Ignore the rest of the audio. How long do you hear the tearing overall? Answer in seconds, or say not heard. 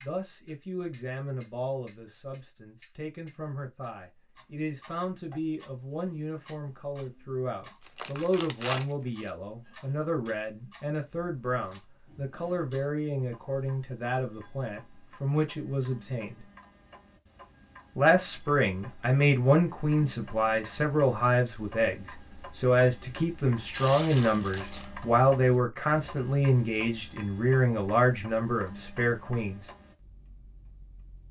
2 s.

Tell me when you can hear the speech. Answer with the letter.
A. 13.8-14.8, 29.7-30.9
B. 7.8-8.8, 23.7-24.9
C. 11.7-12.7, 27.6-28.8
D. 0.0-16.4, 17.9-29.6
D.